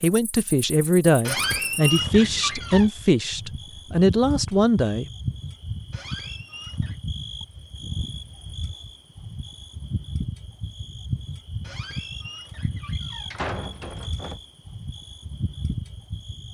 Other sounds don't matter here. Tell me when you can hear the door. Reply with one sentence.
The door can be heard from 1.2 to 2.9 s, from 5.9 to 7.0 s and from 11.7 to 14.4 s.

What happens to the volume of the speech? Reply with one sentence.
The volume of the speech stays about the same.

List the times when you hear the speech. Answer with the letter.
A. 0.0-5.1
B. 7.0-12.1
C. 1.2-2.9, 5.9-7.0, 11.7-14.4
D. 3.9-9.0
A.